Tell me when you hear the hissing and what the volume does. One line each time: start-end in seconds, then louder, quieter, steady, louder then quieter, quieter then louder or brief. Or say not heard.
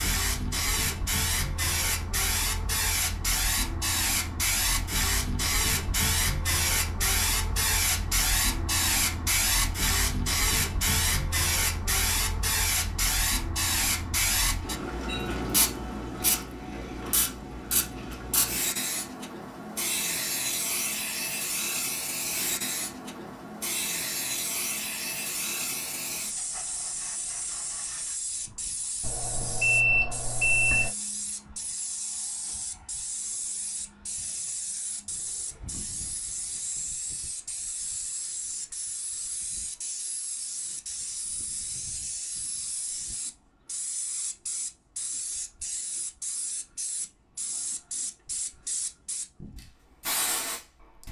0.0-51.0 quieter.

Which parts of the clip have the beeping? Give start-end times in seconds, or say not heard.
29.0-30.9.